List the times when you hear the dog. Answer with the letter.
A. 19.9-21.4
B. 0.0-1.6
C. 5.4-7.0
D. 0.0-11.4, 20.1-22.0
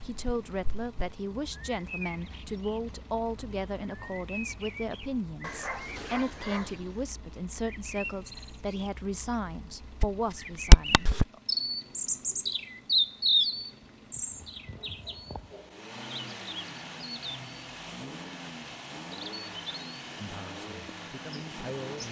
C.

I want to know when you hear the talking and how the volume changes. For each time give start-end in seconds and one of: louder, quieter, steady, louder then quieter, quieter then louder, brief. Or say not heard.
0.0-11.4 steady
20.1-22.0 brief.